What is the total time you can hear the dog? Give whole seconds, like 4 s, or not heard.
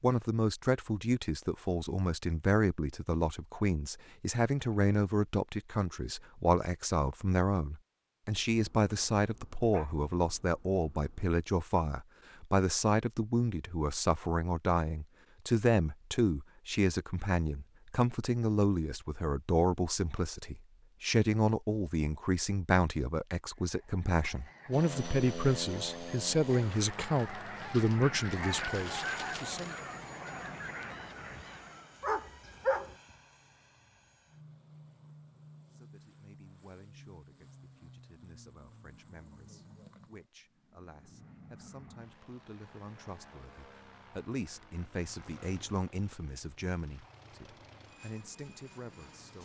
4 s.